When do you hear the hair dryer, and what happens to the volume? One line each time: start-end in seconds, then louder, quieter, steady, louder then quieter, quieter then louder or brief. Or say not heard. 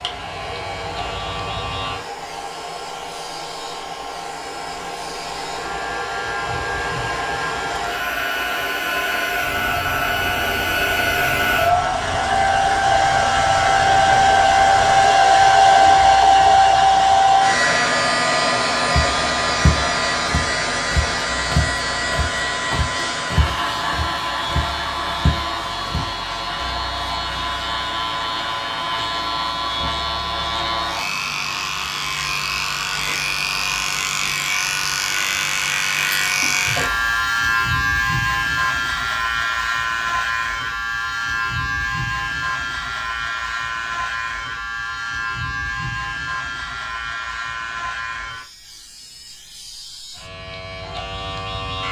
0.0-37.2 louder then quieter.